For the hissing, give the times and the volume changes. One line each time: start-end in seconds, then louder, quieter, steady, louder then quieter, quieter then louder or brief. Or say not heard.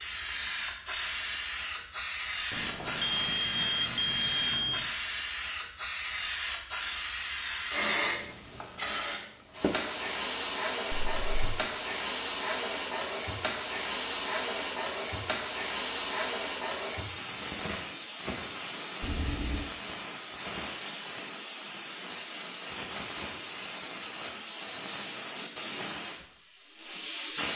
0.0-27.5 quieter.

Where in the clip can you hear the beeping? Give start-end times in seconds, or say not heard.
2.5-4.9, 10.9-11.3, 19.0-19.6.